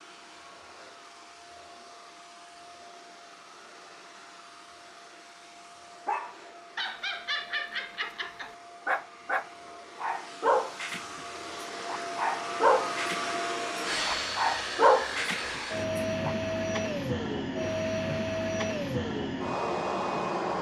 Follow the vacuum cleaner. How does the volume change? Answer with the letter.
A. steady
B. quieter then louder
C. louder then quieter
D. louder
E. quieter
D.